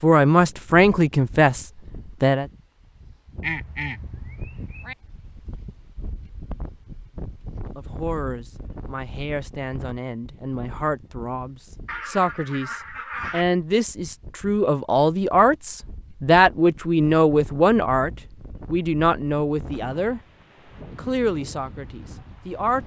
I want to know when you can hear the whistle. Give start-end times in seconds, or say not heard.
not heard.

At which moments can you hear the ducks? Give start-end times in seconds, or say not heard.
3.4-5.0, 11.8-13.4.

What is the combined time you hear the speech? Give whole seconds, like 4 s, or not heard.
17 s.